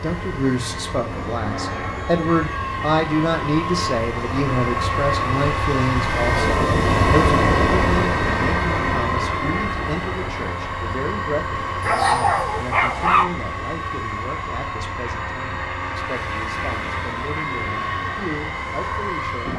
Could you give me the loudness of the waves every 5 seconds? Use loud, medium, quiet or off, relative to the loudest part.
medium, loud, quiet, quiet.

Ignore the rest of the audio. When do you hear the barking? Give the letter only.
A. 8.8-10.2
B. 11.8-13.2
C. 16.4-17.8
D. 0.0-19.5
B.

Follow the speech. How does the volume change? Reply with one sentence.
The loudness of the speech goes down.